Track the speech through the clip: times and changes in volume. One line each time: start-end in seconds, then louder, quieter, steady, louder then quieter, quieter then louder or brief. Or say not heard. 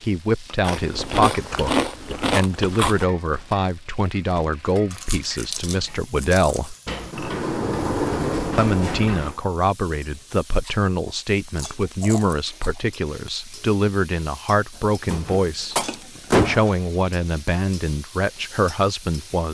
0.0-6.8 steady
8.6-19.4 steady.